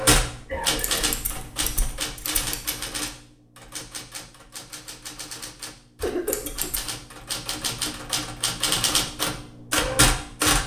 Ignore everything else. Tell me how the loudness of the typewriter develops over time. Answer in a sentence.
The loudness of the typewriter goes down, then up.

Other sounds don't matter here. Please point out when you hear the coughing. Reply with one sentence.
The coughing can be heard from 0.5 to 1.1 s and from 6.0 to 6.7 s.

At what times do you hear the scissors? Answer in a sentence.
You can hear the scissors from 0.5 to 2.9 s and from 6.1 to 6.8 s.